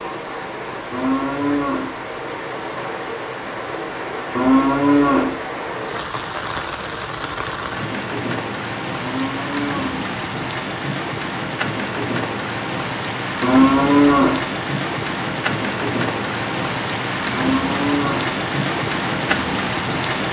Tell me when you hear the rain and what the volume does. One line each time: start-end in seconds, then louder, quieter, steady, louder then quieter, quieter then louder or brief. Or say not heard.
0.0-20.2 louder.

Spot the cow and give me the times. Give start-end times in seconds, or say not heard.
0.9-1.9, 4.3-5.3, 9.0-10.1, 13.4-14.4, 17.3-18.4.